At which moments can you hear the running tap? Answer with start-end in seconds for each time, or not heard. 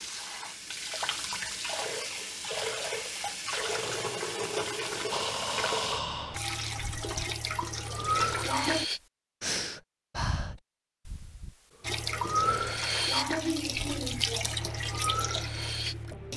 0.0-8.8, 11.8-16.3.